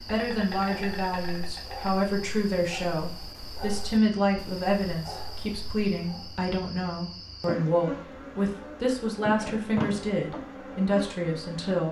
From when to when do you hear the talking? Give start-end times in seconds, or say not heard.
0.0-11.8.